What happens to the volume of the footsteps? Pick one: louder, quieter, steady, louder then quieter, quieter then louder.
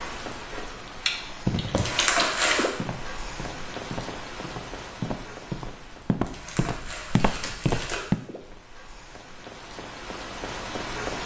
louder.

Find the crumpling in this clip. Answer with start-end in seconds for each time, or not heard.
1.8-2.6, 6.2-8.0.